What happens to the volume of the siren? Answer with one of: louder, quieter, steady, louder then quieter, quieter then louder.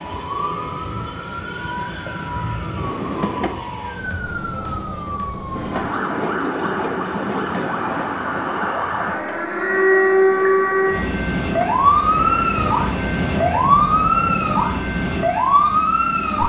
louder.